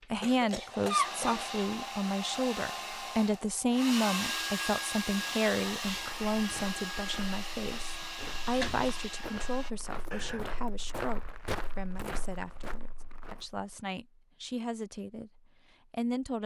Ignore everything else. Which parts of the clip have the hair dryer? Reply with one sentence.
You can hear the hair dryer from 0.0 to 9.7 s.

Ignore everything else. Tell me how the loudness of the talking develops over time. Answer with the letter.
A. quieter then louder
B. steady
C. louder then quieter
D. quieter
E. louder
D.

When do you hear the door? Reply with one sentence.
The door can be heard from 8.0 to 8.9 s.